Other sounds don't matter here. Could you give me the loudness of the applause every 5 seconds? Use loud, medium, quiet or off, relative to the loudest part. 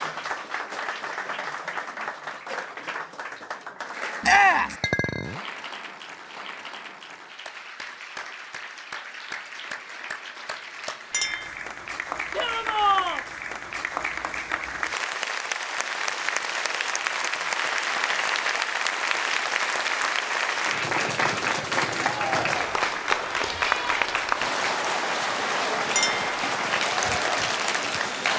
medium, quiet, medium, loud, loud, loud.